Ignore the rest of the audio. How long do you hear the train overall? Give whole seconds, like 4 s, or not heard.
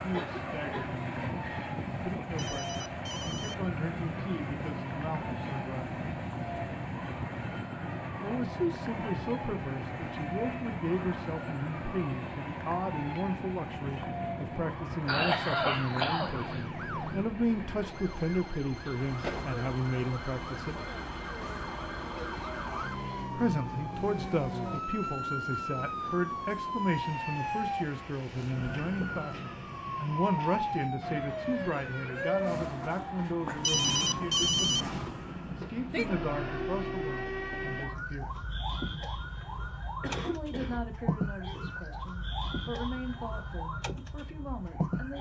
38 s.